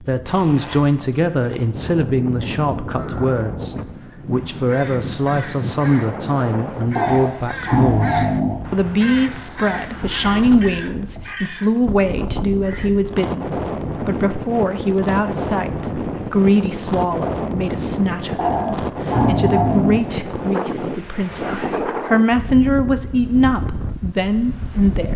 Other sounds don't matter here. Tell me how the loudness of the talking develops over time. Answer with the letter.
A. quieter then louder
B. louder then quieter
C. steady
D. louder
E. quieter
C.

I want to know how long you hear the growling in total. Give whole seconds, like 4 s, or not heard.
4 s.